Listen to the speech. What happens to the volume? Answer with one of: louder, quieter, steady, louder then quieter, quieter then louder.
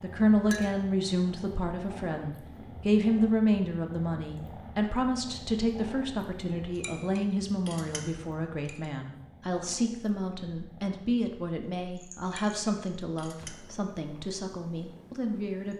quieter.